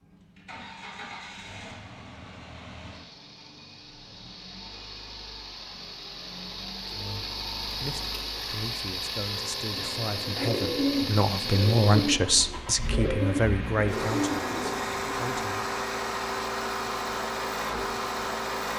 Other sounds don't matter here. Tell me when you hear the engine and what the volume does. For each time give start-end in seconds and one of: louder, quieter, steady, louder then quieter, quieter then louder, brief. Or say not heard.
0.0-18.7 louder.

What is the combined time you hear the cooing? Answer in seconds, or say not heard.
6 s.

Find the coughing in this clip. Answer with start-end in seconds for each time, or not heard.
not heard.